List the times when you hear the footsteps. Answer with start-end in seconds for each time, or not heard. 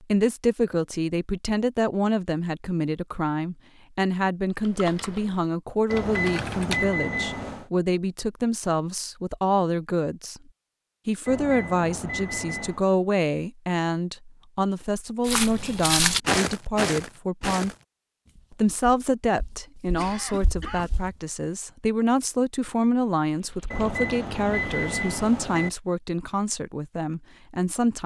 15.2-21.1.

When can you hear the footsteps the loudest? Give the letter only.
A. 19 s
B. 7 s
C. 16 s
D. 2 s
C.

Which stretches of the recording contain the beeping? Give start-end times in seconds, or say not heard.
5.9-7.7, 11.2-12.8, 23.7-25.7.